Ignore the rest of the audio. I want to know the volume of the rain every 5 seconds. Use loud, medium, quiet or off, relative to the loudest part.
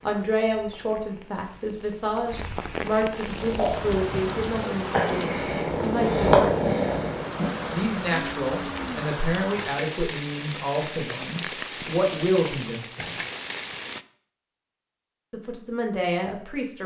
loud, loud, loud, off.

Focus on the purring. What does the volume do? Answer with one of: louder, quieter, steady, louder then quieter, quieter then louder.
louder then quieter.